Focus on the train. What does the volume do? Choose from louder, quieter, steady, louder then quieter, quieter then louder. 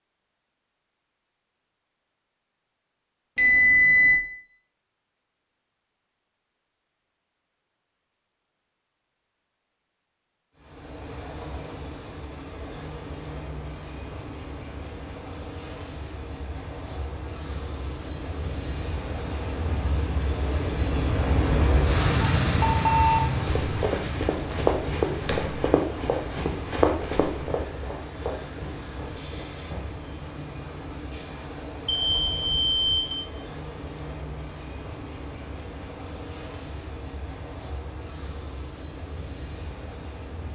louder then quieter.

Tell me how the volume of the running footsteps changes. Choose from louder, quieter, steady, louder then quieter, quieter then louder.
quieter.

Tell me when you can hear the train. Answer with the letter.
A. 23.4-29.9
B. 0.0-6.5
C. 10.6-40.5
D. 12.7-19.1
C.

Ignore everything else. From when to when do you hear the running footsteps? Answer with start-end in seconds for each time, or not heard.
23.4-29.9.